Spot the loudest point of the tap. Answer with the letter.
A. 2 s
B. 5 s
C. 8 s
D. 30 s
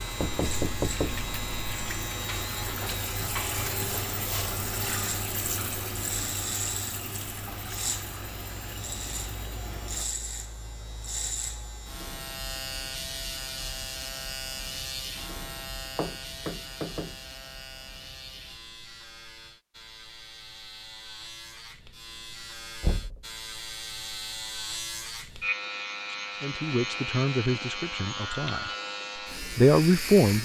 B.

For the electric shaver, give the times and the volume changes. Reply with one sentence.
The electric shaver can be heard from 0.0 to 30.3 s, getting quieter then louder.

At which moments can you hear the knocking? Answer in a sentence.
The knocking can be heard from 0.1 to 1.9 s, from 15.9 to 17.1 s and from 22.8 to 23.2 s.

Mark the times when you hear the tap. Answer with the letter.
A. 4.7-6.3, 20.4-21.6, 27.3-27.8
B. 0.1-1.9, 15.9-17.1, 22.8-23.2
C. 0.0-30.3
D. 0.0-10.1
D.